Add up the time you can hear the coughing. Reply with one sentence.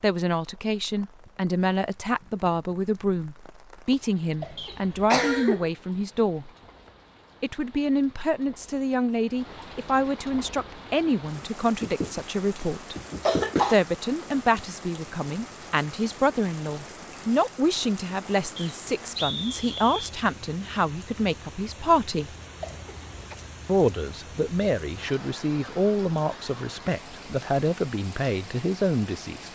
The coughing can be heard for 4 seconds in total.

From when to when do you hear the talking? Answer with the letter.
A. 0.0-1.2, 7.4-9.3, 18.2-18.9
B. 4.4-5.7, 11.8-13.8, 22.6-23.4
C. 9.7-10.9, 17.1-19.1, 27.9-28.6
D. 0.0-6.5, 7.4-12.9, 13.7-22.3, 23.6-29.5
D.